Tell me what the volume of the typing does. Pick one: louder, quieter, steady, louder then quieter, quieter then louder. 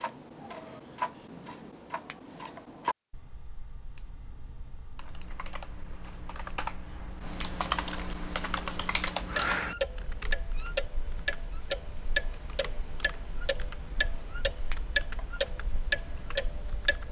louder then quieter.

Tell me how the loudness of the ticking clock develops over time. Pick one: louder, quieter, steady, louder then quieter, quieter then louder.
quieter then louder.